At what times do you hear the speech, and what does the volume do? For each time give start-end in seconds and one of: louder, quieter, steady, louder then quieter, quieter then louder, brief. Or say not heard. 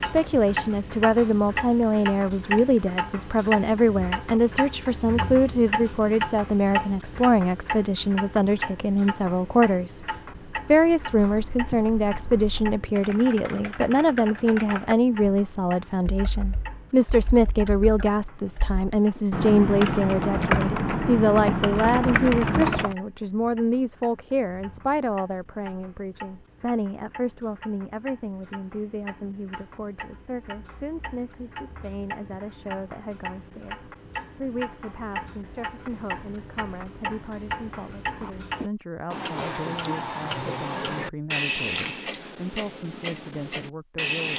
0.0-10.1 steady
10.7-44.3 quieter.